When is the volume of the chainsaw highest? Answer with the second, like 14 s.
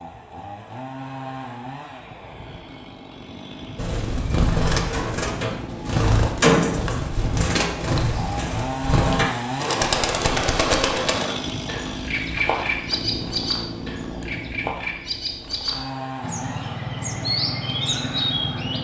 9 s.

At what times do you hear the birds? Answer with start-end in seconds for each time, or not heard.
3.8-18.8.